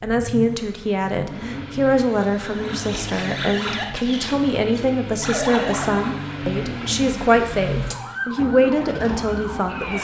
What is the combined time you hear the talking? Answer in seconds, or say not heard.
10 s.